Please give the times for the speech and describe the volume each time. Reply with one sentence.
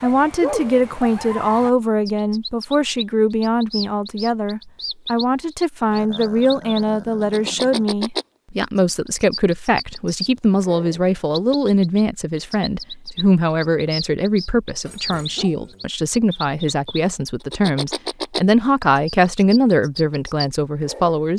You can hear the speech from 0.0 to 21.3 s, at a steady volume.